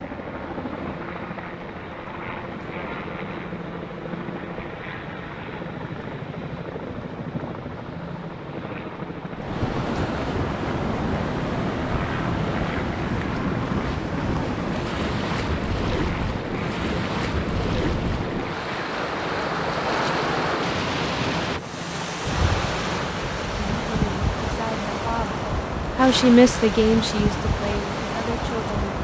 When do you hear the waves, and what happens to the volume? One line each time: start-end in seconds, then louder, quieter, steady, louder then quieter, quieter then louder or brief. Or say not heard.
0.0-28.9 louder.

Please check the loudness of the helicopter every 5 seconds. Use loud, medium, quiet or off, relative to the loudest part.
loud, loud, loud, loud, loud, off.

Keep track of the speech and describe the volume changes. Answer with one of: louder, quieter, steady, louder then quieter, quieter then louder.
louder then quieter.